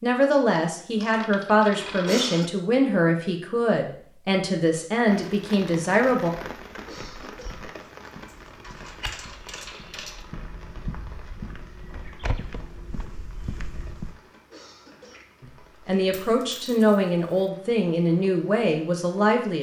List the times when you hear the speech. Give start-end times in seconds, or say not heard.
0.0-6.3, 15.4-19.5.